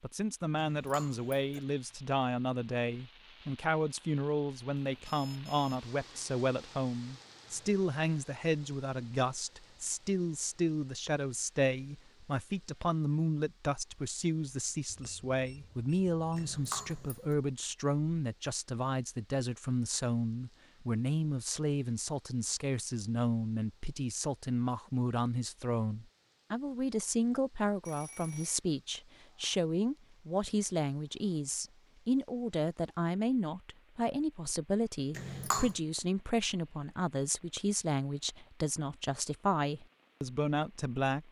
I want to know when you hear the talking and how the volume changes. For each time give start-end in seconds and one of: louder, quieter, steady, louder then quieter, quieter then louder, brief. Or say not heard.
0.0-41.2 steady.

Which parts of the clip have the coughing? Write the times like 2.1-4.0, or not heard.
0.6-1.6, 16.4-17.4, 35.1-35.8.